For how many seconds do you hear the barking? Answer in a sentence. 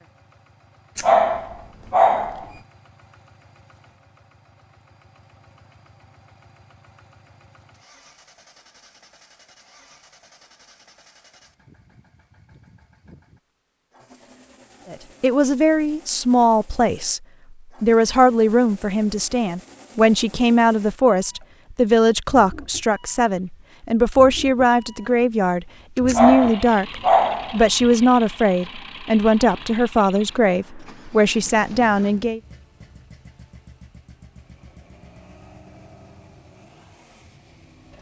The barking can be heard for 3 seconds in total.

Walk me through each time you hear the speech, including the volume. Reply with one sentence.
You can hear the speech briefly from 14.9 to 17.2 s; and from 17.8 to 32.4 s, at a steady volume.